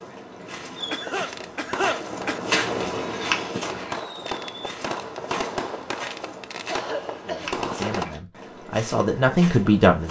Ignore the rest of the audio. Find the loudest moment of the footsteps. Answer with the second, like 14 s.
3 s.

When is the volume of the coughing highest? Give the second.
2 s.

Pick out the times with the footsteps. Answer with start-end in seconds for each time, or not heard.
0.0-10.0.